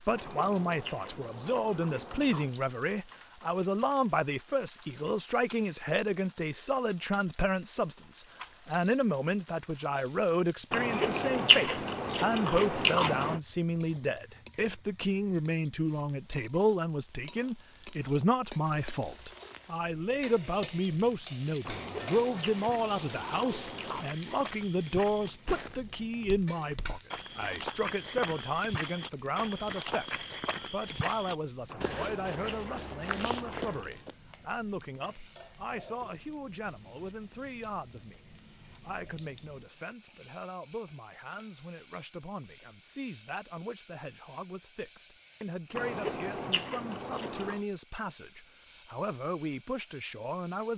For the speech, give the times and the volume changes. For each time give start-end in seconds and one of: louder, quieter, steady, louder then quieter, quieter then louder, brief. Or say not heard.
0.0-50.7 quieter.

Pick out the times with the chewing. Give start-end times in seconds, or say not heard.
0.1-2.5, 10.7-13.4, 21.6-24.1, 31.6-33.9, 45.8-47.6.